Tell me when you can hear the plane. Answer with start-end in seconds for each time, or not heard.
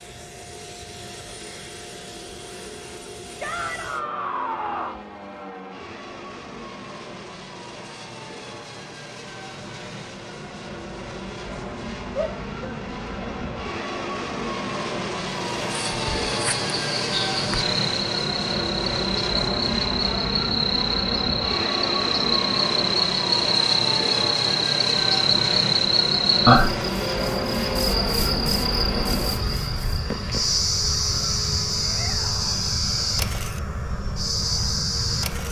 0.0-35.4.